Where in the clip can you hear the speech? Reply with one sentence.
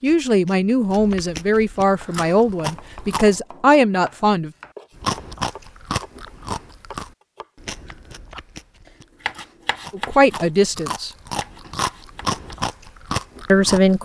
You can hear the speech from 0.0 to 4.5 s, from 9.9 to 11.1 s and from 13.4 to 13.9 s.